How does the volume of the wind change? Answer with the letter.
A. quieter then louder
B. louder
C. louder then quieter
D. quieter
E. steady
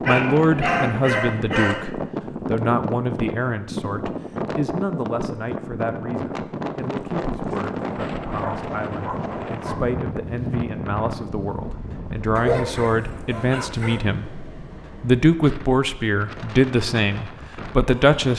D.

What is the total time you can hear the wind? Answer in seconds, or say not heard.
18 s.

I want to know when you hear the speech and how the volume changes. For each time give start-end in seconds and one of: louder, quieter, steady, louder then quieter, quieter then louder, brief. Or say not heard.
0.1-18.3 quieter then louder.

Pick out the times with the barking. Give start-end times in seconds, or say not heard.
0.1-1.9, 8.4-9.8, 12.3-14.0.